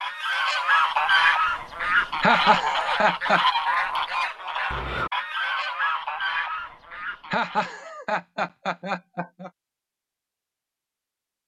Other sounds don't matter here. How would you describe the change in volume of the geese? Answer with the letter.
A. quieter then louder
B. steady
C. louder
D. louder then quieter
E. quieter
E.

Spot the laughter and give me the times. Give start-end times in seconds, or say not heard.
2.2-3.4, 7.3-9.5.